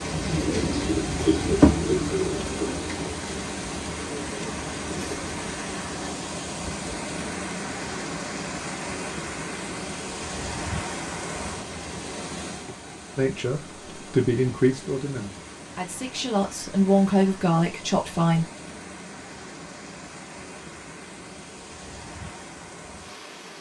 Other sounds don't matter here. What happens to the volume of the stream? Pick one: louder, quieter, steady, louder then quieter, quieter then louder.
quieter.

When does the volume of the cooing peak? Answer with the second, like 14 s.
2 s.